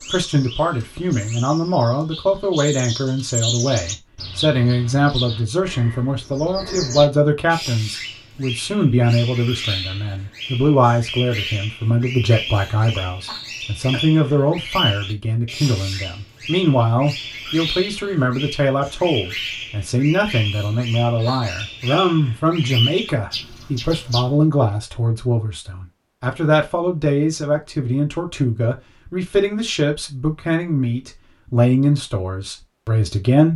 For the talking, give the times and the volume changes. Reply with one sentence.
The talking can be heard from 0.0 to 33.5 s, at a steady volume.